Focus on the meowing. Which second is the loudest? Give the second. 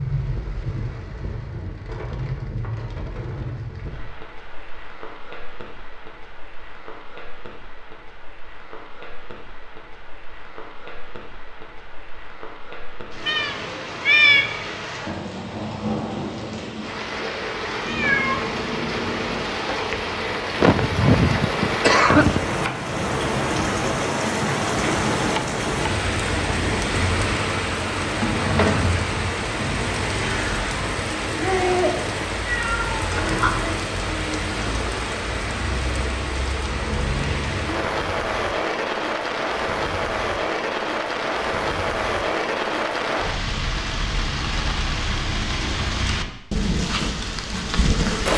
14 s.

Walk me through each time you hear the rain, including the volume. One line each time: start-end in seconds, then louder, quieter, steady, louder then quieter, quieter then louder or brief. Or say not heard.
0.0-48.3 louder.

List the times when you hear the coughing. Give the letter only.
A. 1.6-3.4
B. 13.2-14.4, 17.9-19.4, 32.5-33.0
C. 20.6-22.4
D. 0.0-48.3
C.